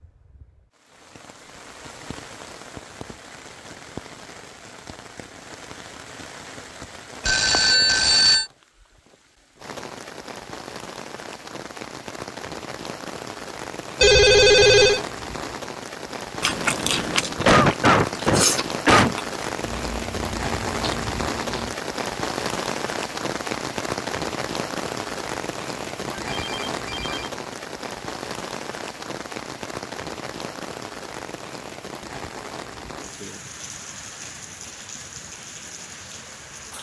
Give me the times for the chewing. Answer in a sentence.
The chewing can be heard from 16.4 to 21.8 s.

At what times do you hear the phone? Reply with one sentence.
The phone can be heard from 7.2 to 8.4 s, from 14.0 to 15.0 s and from 26.1 to 27.3 s.